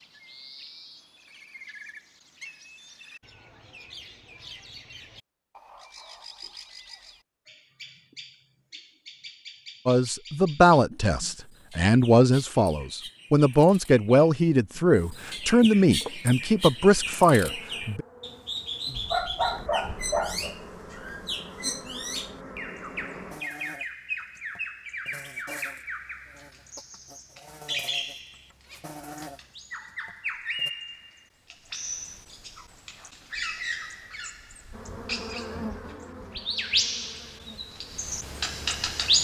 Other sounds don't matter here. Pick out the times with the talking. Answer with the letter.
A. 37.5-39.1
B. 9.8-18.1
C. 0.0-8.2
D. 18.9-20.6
B.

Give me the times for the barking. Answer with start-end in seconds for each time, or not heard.
18.9-20.6.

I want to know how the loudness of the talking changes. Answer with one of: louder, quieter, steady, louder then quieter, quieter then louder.
steady.